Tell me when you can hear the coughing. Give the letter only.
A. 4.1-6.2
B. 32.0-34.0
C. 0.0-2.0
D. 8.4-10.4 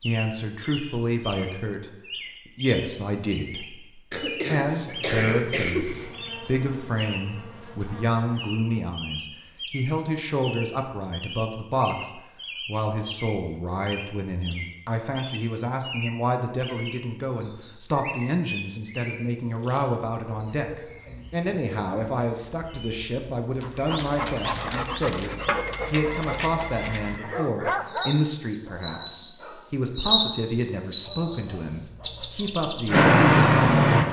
A.